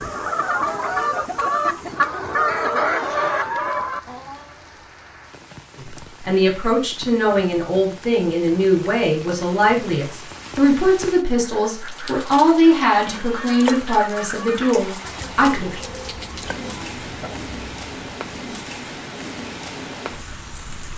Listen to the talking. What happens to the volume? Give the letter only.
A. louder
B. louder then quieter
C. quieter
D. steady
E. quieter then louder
D.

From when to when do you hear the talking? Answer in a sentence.
The talking can be heard from 5.8 to 15.8 s.